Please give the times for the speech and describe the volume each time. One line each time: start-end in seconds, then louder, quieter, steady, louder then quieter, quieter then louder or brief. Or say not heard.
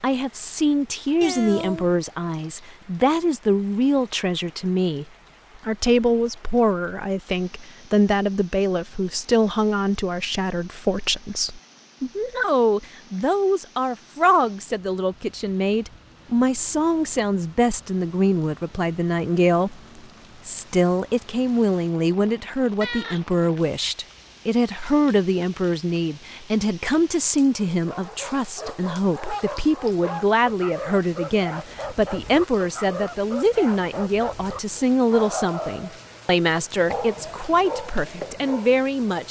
0.0-5.0 quieter then louder
5.7-39.2 steady.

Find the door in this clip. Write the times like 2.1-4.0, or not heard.
not heard.